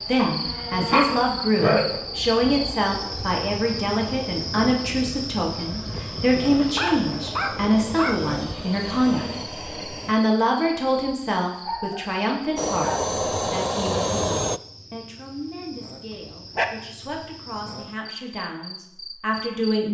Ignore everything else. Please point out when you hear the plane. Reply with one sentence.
You can hear the plane from 0.0 to 10.2 s and from 12.6 to 14.6 s.